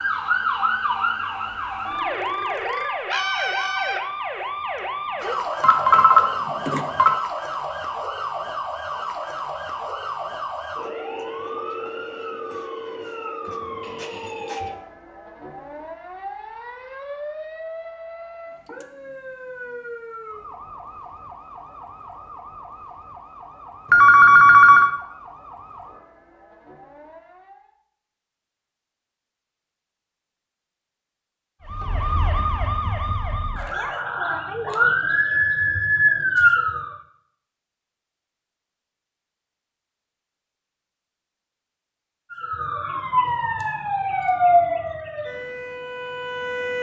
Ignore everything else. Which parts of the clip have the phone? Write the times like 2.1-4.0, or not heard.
5.6-7.2, 23.9-24.9.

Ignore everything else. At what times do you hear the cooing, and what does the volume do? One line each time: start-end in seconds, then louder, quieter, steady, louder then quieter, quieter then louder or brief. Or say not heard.
not heard.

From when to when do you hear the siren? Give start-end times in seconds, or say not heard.
0.0-27.8, 31.6-37.0, 42.3-46.7.